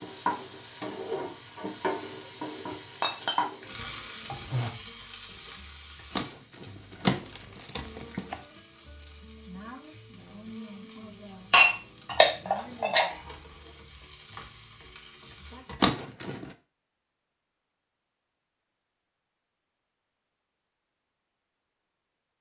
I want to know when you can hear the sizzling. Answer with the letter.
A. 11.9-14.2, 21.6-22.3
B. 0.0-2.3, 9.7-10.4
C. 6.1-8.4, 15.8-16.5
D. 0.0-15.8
D.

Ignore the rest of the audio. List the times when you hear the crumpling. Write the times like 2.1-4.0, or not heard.
6.1-8.4, 15.8-16.5.